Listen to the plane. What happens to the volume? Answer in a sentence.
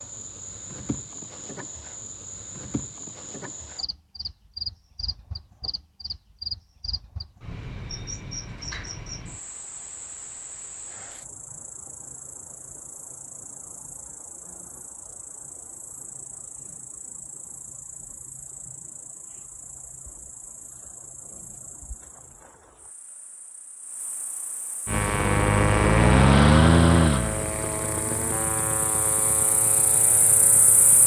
The loudness of the plane goes down.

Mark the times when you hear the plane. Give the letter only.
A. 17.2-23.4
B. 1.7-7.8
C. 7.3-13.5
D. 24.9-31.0
D.